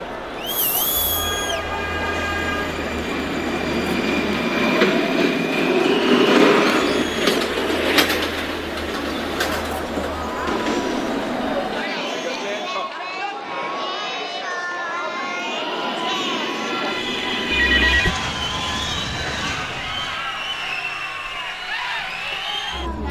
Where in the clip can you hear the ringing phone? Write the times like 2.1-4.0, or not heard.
17.5-18.1.